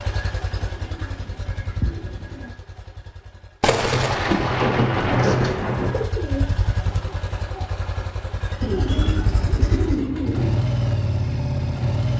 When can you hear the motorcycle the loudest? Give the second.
11 s.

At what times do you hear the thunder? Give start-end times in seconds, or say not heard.
3.6-6.1.